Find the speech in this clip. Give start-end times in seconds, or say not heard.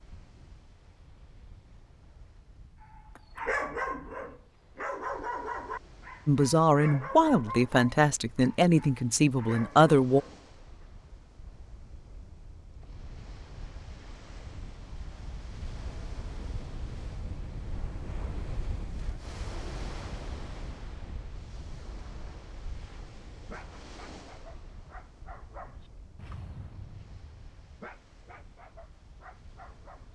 6.2-10.2.